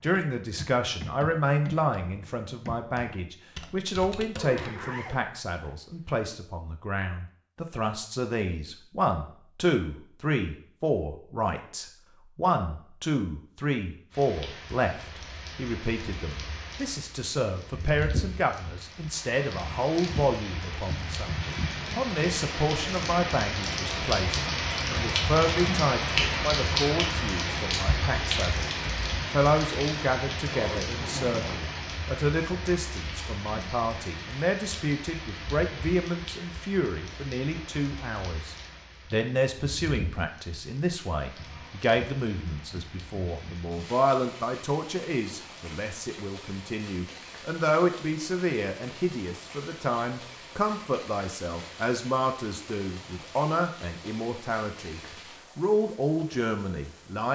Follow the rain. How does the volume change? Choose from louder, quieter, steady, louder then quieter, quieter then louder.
louder then quieter.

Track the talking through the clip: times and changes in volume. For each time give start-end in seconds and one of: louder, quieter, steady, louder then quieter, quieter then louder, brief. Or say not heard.
0.0-57.3 steady.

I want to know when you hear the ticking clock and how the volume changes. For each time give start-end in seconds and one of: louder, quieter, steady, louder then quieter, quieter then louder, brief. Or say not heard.
not heard.